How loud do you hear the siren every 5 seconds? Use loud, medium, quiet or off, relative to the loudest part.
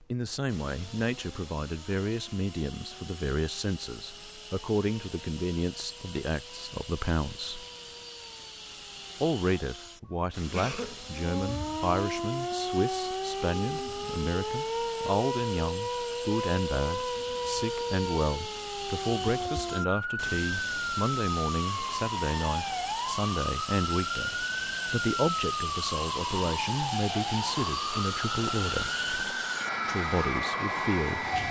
quiet, quiet, loud, loud, loud, loud, loud.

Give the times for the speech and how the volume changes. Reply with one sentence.
You can hear the speech from 0.0 to 7.7 s, at a steady volume; from 9.2 to 28.9 s, at a steady volume; and briefly from 29.9 to 31.4 s.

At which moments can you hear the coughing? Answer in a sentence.
You can hear the coughing from 10.1 to 11.0 s.